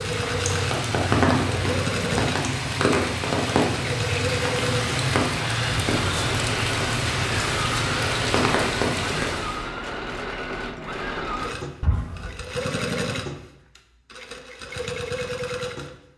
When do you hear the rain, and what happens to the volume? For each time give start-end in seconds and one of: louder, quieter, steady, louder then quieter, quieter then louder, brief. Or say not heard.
0.0-9.7 steady.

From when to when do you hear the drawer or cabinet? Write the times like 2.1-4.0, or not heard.
11.8-12.4.